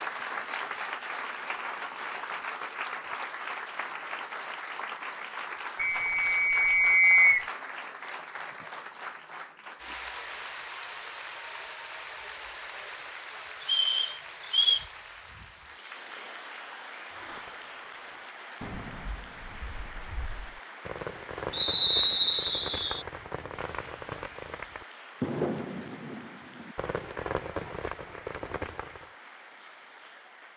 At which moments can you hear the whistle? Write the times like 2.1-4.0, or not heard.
5.8-7.5, 13.6-14.8, 21.5-23.1.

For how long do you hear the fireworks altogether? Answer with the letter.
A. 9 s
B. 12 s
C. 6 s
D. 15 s
B.